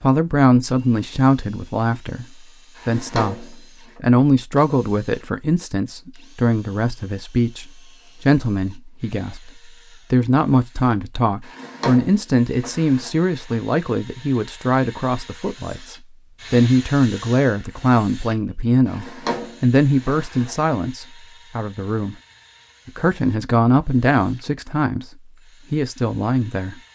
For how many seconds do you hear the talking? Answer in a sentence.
You can hear the talking for 25 seconds altogether.